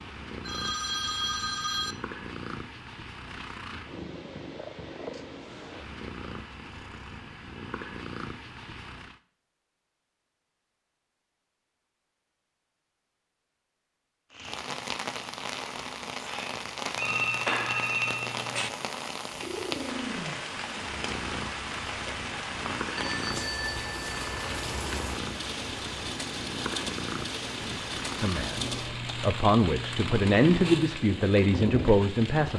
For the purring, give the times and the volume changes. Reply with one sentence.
The purring can be heard from 0.0 to 9.2 s, at a steady volume; and from 19.2 to 31.0 s, at a steady volume.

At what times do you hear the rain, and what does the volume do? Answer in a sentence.
You can hear the rain from 14.3 to 32.5 s, at a steady volume.